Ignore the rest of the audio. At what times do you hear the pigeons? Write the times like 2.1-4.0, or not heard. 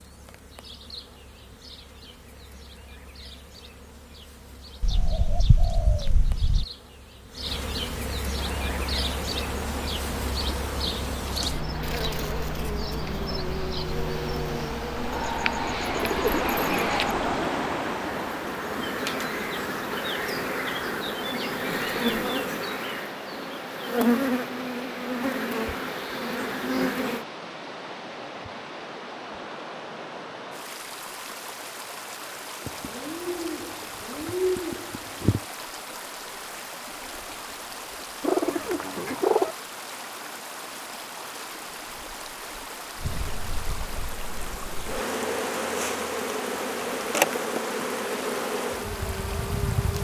4.8-6.7, 15.1-17.1, 32.6-35.5, 38.2-39.5.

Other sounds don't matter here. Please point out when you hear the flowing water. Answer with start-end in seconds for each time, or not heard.
8.3-49.9.